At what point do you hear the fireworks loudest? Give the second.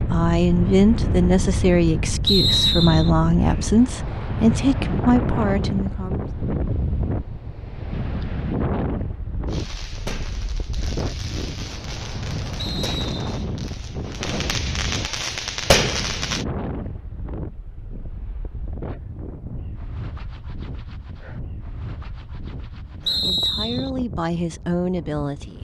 16 s.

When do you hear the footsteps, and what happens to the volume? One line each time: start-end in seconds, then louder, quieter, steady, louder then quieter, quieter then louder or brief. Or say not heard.
not heard.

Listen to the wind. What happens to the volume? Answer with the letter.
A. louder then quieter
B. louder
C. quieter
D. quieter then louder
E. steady
C.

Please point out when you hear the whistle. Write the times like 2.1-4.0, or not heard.
2.2-3.1, 12.6-13.4, 23.1-23.9.